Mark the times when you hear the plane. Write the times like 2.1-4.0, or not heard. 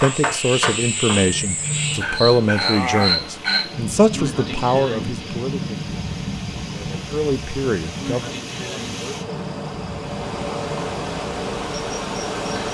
not heard.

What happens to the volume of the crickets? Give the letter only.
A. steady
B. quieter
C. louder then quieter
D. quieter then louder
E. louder
B.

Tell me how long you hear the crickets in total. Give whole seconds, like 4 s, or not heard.
13 s.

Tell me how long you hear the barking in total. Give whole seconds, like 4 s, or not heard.
2 s.